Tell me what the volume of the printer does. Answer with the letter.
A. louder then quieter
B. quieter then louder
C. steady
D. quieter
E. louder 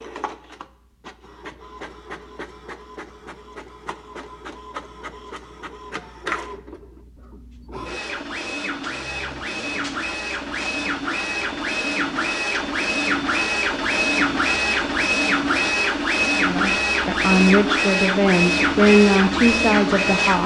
E.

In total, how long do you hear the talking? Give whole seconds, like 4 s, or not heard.
4 s.